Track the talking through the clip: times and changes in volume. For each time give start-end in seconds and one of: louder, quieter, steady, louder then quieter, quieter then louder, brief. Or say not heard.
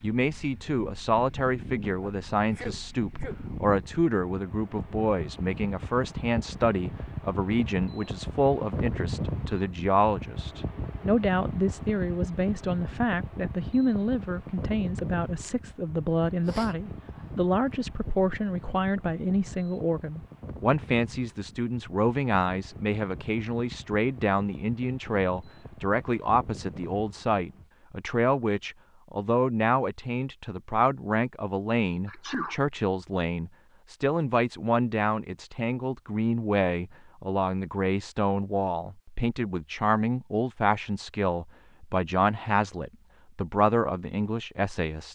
0.0-45.1 steady.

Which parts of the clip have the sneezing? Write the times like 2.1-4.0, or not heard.
1.9-3.4, 16.4-17.2, 32.0-32.5.